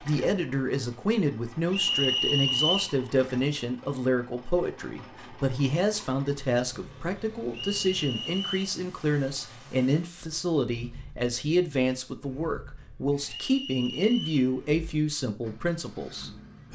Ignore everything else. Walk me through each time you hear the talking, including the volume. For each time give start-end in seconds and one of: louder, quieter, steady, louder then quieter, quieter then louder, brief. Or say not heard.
0.1-16.7 steady.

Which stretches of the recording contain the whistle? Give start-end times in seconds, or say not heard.
1.7-3.0, 7.5-8.7, 13.2-14.4.